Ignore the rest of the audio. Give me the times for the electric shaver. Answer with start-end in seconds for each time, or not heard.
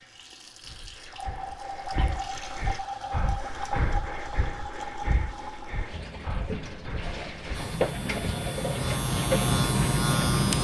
7.5-10.5.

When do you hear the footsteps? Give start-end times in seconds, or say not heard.
not heard.